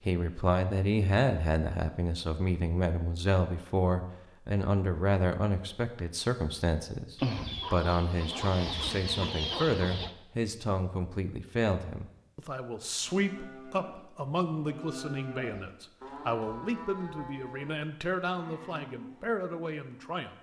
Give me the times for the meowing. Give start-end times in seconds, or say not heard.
not heard.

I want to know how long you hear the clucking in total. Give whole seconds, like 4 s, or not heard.
3 s.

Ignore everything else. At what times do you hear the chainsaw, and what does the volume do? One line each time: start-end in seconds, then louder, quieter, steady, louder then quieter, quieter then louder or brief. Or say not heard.
not heard.